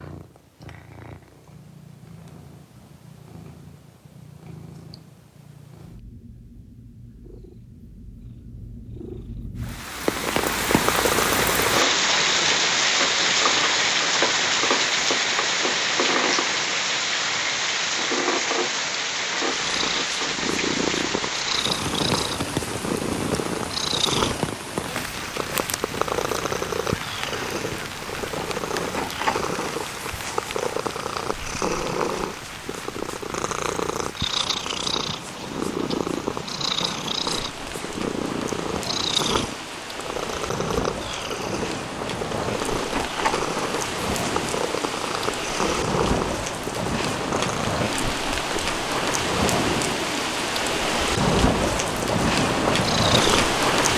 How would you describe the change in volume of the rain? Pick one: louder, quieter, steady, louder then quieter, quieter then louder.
quieter then louder.